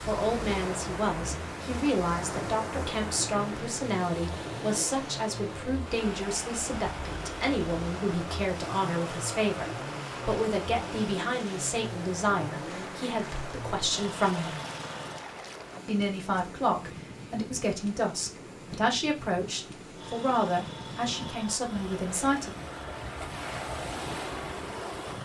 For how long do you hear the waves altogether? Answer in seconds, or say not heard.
25 s.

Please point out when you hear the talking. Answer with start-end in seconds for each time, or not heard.
0.1-14.7, 15.8-22.6.